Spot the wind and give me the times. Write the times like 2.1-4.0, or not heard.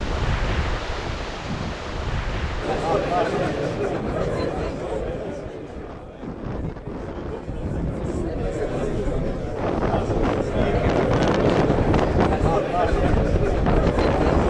0.0-14.4.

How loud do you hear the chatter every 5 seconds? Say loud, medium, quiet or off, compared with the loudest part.
loud, medium, loud.